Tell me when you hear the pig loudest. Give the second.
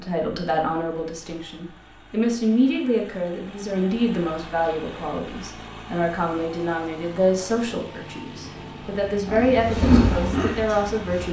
10 s.